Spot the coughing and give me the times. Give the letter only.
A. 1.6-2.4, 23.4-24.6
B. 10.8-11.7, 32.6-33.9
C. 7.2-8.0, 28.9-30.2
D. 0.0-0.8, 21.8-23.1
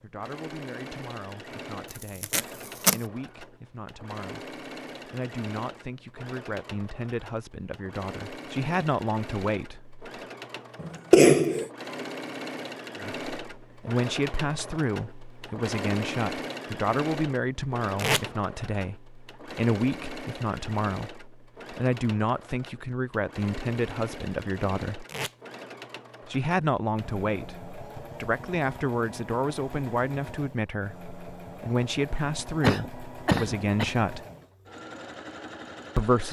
B.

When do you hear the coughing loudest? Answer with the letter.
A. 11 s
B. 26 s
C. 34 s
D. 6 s
A.